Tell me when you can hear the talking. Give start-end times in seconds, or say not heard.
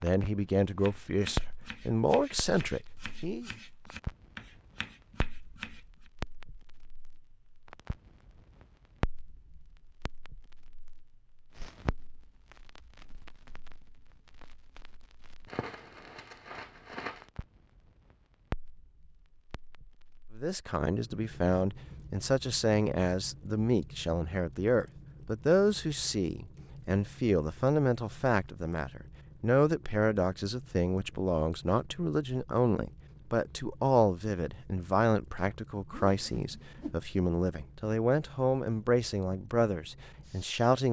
0.0-3.5, 20.4-40.8.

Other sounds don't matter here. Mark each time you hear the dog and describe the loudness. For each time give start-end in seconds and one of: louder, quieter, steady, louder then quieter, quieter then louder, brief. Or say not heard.
not heard.